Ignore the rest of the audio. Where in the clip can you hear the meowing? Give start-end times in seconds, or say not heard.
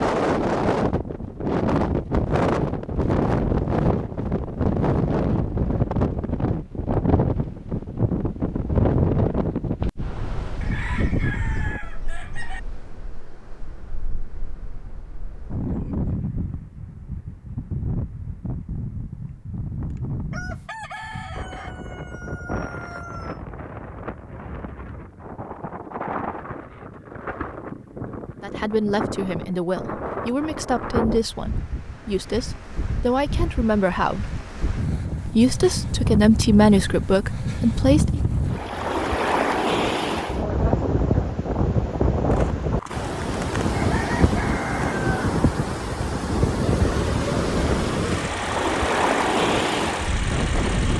not heard.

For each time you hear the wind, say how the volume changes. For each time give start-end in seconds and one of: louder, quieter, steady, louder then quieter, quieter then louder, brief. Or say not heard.
0.0-50.9 quieter then louder.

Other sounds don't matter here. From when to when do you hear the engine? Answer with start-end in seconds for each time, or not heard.
46.8-50.9.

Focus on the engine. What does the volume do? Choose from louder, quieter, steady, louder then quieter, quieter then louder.
steady.